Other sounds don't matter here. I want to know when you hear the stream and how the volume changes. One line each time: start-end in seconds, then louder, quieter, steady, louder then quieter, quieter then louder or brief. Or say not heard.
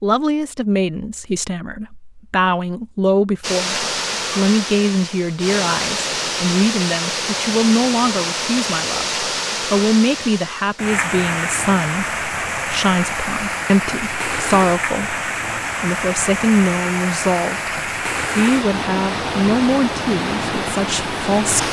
3.4-21.6 steady.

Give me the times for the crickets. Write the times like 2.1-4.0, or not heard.
not heard.